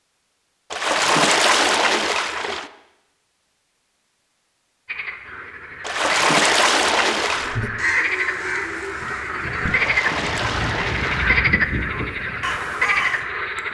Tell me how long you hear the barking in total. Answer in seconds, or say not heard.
not heard.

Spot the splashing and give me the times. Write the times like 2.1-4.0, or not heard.
0.7-2.7, 5.8-7.6, 9.7-11.4.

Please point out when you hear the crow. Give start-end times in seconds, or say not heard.
7.3-13.2.